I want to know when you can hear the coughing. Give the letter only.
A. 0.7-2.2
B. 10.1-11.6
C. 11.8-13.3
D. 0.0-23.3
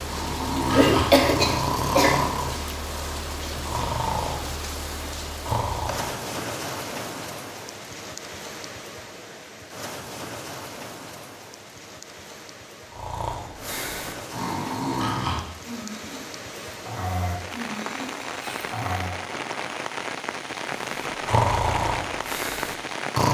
A.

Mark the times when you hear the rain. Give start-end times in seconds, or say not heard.
0.0-23.3.